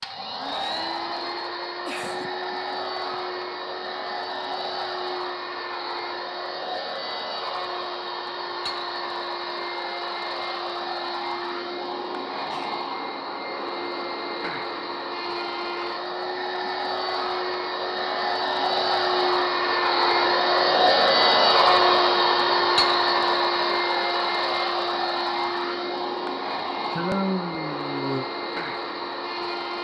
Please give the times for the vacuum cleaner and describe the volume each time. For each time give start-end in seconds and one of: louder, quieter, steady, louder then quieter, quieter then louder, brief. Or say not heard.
0.0-29.7 louder then quieter.